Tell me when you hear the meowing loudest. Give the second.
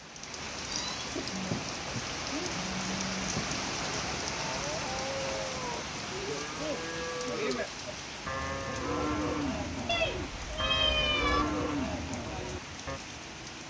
11 s.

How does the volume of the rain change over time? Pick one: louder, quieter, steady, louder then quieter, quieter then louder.
quieter.